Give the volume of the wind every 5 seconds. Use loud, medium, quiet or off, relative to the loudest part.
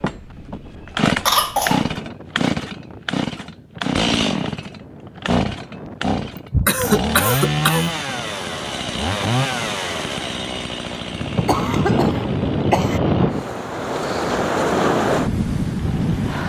quiet, quiet, loud, loud.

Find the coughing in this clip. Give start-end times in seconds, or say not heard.
1.2-1.9, 6.5-7.9, 11.4-13.0.